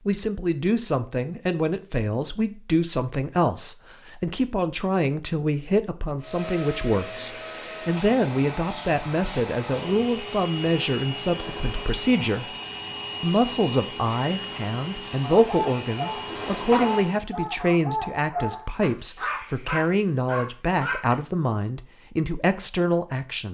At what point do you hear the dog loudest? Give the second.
17 s.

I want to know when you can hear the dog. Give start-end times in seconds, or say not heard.
15.2-21.1.